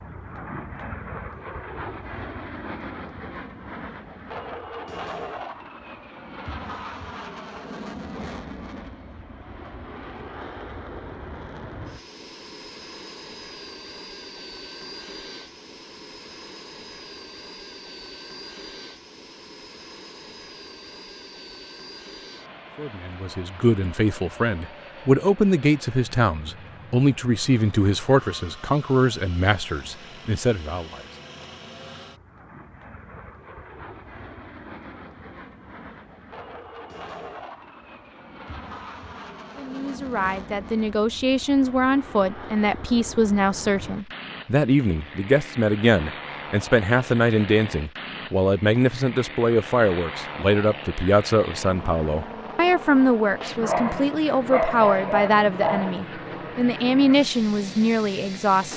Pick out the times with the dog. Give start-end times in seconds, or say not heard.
53.6-56.0.